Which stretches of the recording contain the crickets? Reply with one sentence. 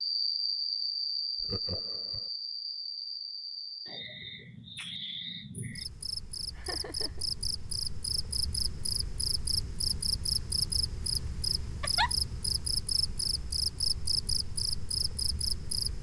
You can hear the crickets from 0.0 to 15.9 s.